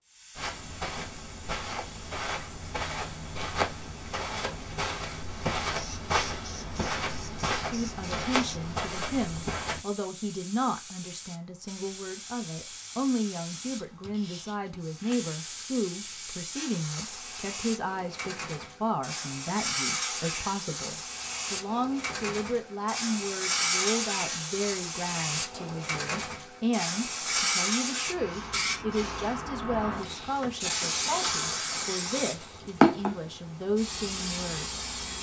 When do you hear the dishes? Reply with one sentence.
You can't hear the dishes here.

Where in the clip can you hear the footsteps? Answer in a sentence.
The footsteps can be heard from 0.3 to 9.8 s.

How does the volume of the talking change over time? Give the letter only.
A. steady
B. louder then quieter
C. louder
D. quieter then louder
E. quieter
A.